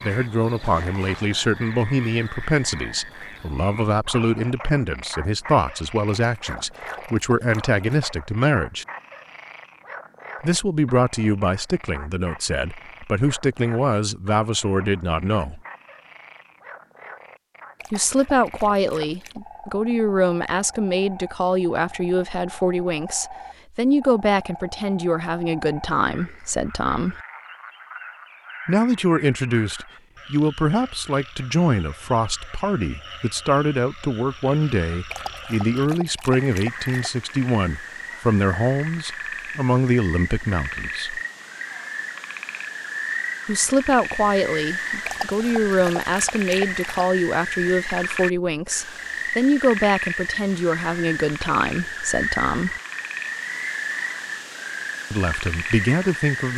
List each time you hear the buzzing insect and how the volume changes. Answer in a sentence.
The buzzing insect can't be heard in this clip.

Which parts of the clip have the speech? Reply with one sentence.
You can hear the speech from 0.0 to 8.8 s, from 10.4 to 15.6 s, from 17.9 to 27.2 s, from 28.6 to 41.2 s, from 43.5 to 52.8 s and from 55.1 to 56.5 s.